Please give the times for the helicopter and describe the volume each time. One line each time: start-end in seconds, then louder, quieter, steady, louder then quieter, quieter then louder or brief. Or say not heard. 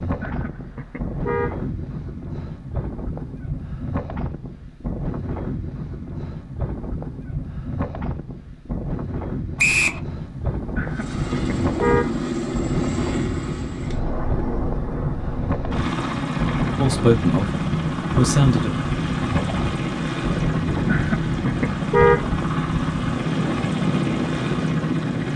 10.8-25.3 steady.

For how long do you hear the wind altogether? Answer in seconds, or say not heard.
25 s.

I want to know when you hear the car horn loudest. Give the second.
22 s.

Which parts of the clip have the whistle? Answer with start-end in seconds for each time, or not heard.
9.6-10.0.